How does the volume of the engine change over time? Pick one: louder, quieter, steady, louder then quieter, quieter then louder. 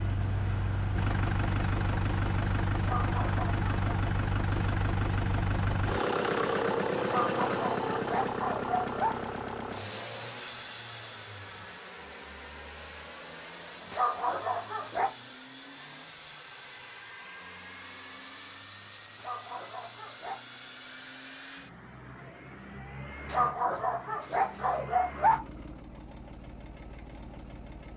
quieter.